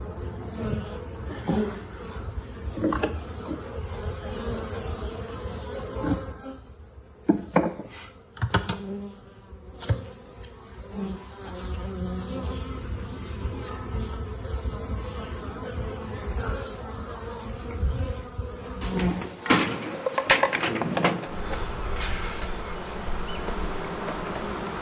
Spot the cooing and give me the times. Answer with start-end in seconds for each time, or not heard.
18.8-21.3.